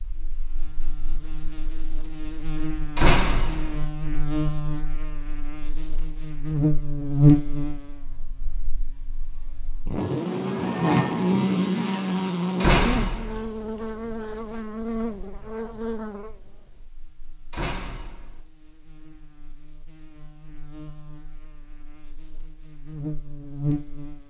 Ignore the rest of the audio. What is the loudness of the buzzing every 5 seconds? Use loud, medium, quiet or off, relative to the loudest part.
medium, loud, loud, quiet, medium.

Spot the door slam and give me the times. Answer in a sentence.
You can hear the door slam from 3.0 to 3.9 s, from 12.6 to 13.5 s and from 17.5 to 18.4 s.